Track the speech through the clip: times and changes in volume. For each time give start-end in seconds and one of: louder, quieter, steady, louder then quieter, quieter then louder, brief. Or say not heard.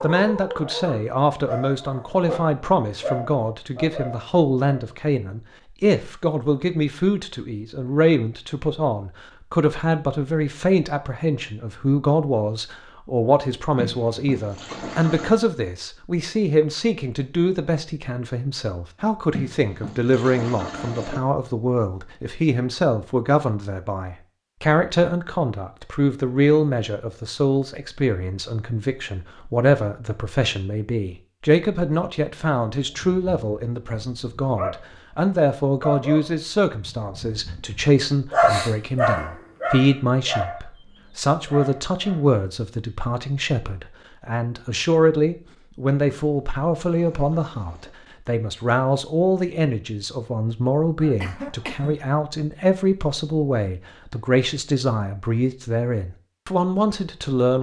0.0-57.5 steady.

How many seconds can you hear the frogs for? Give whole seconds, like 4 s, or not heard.
not heard.